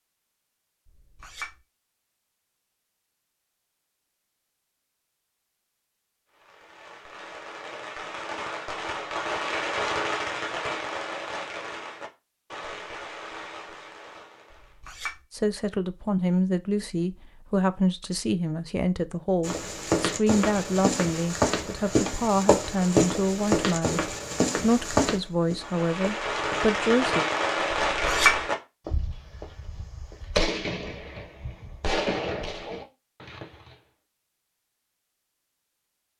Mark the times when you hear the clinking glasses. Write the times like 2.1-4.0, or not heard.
0.8-1.6, 14.5-15.2, 27.9-28.4.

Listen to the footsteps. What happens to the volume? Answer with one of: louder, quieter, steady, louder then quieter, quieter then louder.
quieter.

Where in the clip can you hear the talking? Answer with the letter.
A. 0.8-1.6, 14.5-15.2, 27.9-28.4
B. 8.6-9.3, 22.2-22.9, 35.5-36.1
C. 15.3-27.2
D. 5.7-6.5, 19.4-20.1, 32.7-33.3
C.